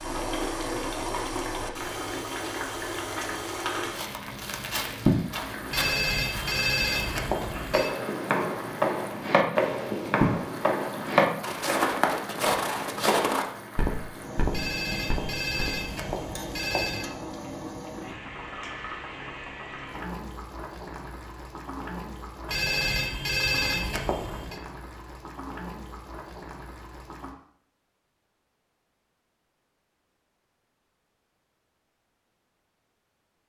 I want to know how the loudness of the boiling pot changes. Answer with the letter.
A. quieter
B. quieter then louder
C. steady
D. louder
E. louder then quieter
A.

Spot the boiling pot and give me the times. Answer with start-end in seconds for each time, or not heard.
0.0-27.4.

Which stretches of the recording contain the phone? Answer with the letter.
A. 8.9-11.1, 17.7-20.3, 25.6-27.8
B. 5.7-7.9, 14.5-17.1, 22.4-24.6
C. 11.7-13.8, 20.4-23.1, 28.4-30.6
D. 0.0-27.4
B.